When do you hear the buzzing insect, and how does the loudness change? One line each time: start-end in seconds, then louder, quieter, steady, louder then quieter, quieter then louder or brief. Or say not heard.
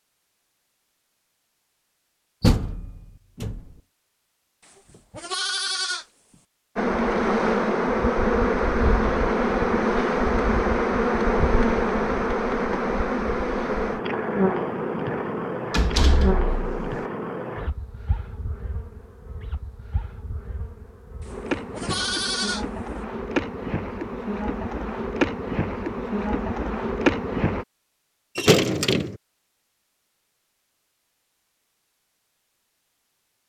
6.8-27.6 quieter then louder.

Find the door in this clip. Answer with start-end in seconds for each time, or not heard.
2.4-3.6, 15.7-17.0, 28.4-29.1.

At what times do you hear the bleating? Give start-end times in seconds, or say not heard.
4.7-6.0, 21.2-22.6.